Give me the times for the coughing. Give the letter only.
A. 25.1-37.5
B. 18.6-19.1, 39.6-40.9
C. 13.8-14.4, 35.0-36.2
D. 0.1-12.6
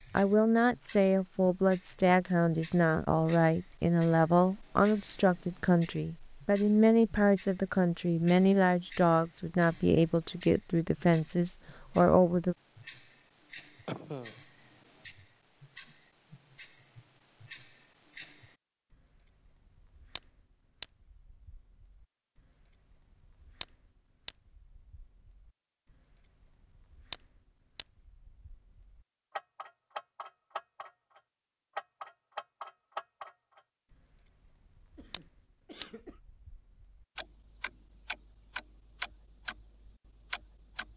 C.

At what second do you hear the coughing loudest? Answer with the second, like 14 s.
14 s.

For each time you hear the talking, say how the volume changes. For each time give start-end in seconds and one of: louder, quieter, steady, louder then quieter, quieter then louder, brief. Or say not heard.
0.1-12.6 steady.